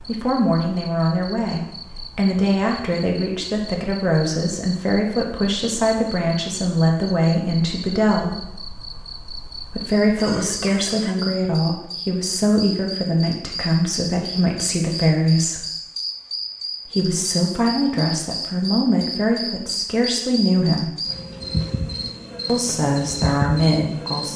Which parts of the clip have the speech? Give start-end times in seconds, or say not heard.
0.1-8.4, 9.7-15.7, 16.9-20.9, 22.4-24.3.